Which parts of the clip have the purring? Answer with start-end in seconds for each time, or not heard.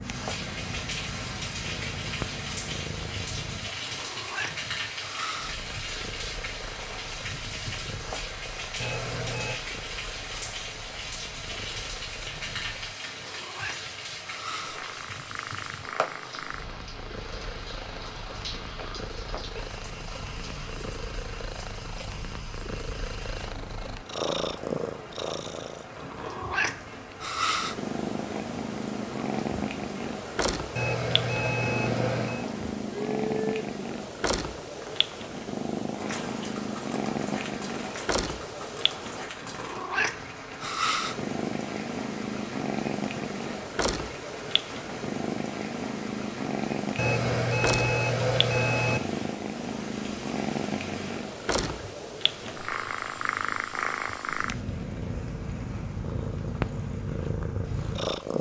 0.0-58.3.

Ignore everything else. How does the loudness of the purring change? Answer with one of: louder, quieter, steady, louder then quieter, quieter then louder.
louder.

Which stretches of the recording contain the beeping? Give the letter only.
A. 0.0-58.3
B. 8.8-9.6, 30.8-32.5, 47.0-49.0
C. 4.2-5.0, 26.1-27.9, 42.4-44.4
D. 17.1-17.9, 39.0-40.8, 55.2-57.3
B.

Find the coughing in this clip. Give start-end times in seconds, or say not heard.
not heard.